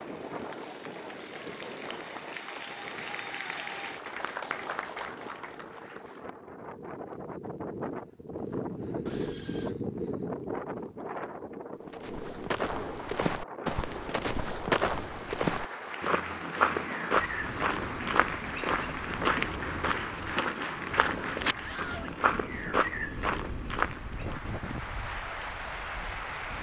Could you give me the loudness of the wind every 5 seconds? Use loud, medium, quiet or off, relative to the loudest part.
medium, loud, loud, medium, medium, quiet.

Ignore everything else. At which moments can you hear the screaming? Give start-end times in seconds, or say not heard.
9.1-9.8, 21.6-22.1.